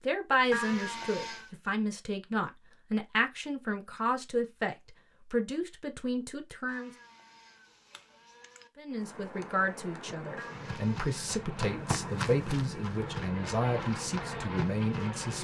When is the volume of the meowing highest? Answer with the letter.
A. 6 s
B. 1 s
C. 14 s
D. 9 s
B.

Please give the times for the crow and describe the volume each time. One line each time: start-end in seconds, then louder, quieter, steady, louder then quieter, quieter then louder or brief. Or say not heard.
not heard.